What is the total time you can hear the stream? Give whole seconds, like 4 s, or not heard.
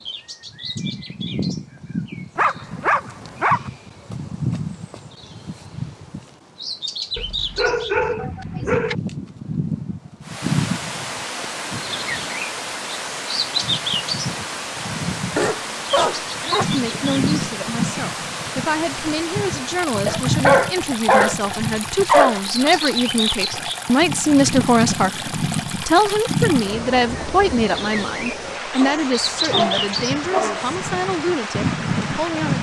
22 s.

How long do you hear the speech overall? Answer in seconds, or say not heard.
16 s.